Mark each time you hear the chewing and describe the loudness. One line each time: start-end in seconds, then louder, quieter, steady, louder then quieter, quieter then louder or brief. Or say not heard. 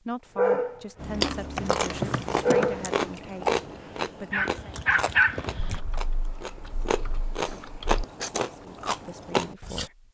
0.9-9.9 quieter then louder.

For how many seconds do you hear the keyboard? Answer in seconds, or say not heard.
4 s.